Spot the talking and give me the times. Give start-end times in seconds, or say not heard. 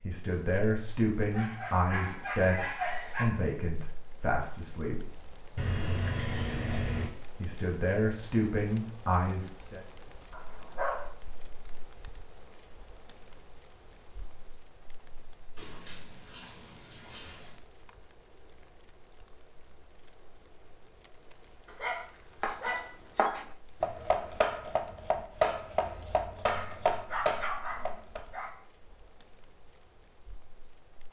0.0-5.0, 7.3-9.8.